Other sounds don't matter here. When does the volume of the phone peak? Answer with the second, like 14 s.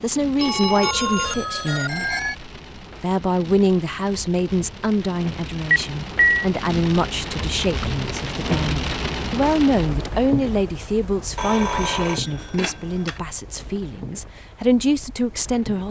6 s.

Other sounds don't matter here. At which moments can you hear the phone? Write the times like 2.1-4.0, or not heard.
0.4-2.4, 5.7-6.5, 11.3-13.2.